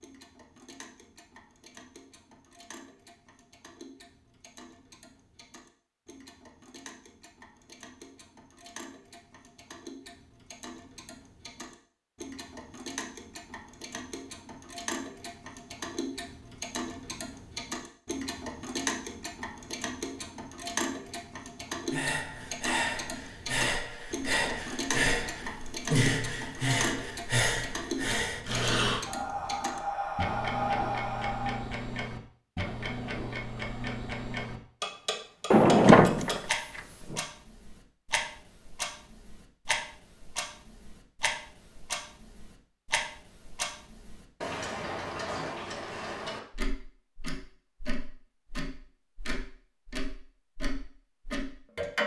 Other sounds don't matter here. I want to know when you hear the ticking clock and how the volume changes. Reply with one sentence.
The ticking clock can be heard from 0.0 to 52.0 s, getting louder.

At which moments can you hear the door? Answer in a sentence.
You can hear the door from 35.5 to 37.2 s.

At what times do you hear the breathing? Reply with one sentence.
The breathing can be heard from 21.9 to 31.7 s.